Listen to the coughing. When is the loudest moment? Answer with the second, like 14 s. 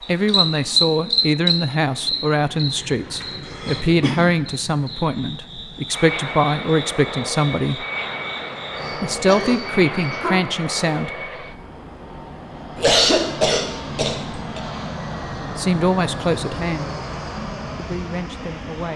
13 s.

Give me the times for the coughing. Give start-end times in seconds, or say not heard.
3.2-4.2, 9.2-10.3, 12.8-14.6.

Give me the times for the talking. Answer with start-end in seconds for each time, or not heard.
0.1-7.8, 8.9-11.1, 15.6-16.9, 17.8-18.9.